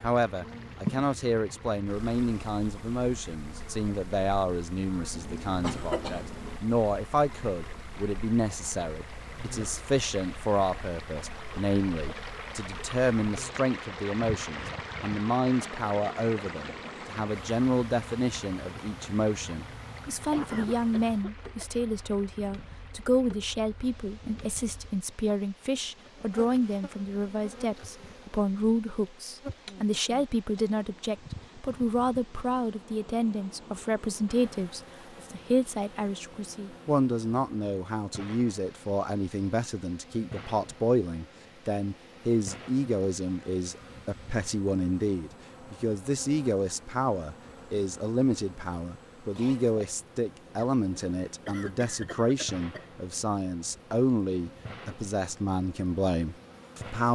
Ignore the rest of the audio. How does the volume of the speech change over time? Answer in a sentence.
The loudness of the speech stays about the same.